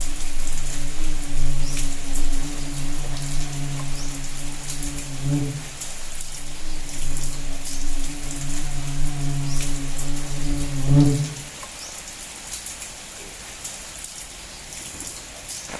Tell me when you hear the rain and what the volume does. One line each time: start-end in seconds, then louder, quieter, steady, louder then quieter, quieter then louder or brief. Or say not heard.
0.0-15.7 steady.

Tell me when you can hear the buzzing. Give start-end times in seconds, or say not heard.
0.0-11.2.